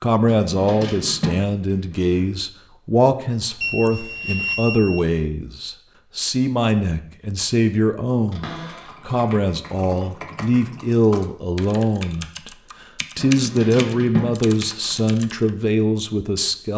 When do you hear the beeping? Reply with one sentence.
You can hear the beeping from 3.6 to 5.0 s.